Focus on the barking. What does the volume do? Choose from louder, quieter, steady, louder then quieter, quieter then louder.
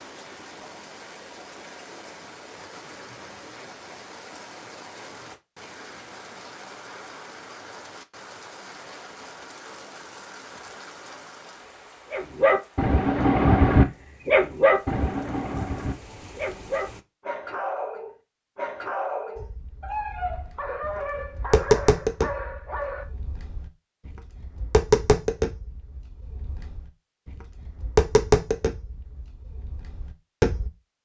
quieter.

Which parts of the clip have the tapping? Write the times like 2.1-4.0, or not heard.
19.4-30.7.